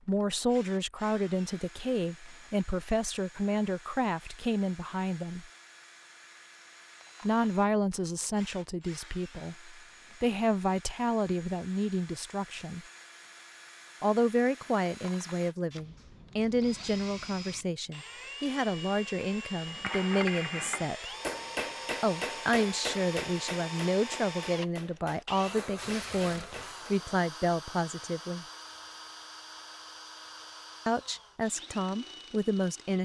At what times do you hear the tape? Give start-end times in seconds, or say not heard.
25.8-26.8.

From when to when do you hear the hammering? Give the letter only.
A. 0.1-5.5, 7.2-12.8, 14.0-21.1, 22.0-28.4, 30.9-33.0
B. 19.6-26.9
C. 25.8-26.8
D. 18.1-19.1
B.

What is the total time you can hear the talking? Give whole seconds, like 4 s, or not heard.
27 s.